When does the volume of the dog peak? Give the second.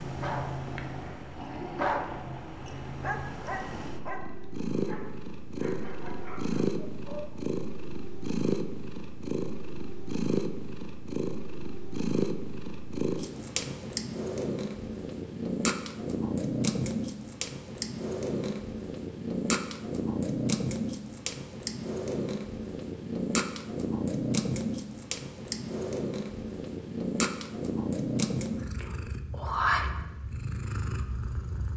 2 s.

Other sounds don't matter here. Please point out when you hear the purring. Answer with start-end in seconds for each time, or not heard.
0.0-31.7.